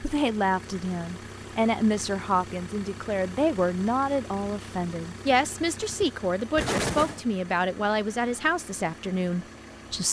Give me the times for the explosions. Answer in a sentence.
The explosions can be heard from 6.5 to 7.2 s.